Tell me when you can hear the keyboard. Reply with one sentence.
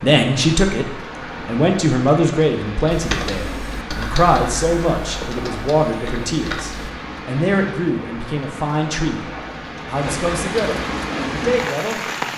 The keyboard can be heard from 2.9 to 6.9 s.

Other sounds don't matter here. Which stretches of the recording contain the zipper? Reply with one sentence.
The zipper can't be heard in this clip.